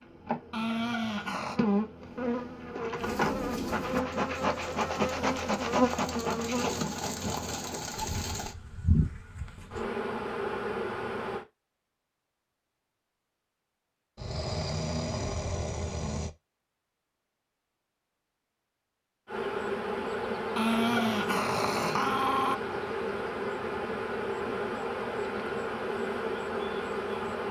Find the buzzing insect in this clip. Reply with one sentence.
The buzzing insect can be heard from 0.0 to 11.4 s and from 19.2 to 27.4 s.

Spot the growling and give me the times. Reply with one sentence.
You can hear the growling from 0.5 to 1.6 s, from 14.2 to 16.3 s and from 20.6 to 22.6 s.